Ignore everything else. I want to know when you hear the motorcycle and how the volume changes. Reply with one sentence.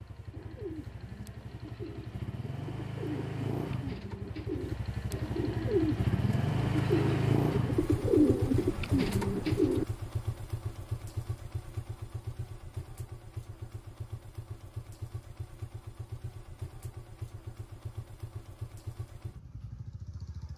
You can hear the motorcycle from 0.0 to 20.5 s, getting louder then quieter.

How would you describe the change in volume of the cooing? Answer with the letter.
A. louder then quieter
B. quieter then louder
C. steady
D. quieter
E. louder
E.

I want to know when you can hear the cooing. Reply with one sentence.
The cooing can be heard from 0.3 to 9.8 s.